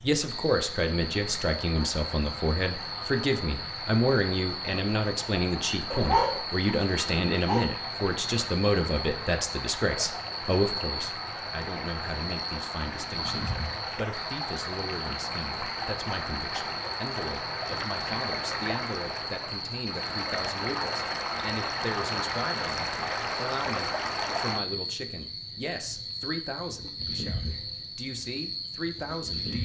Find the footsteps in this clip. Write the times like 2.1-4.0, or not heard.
not heard.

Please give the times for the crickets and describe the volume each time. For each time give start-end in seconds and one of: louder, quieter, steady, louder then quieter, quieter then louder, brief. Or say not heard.
0.0-29.6 steady.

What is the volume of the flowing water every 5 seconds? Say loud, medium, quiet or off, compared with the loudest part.
medium, medium, medium, loud, loud, off.